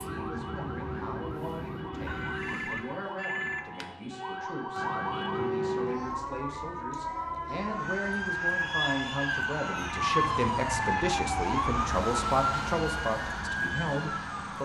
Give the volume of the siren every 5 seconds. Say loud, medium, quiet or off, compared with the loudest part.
medium, loud, loud.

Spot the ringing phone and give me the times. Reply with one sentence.
You can hear the ringing phone from 2.0 to 3.9 s and from 9.7 to 11.1 s.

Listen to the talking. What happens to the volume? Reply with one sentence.
The volume of the talking goes up.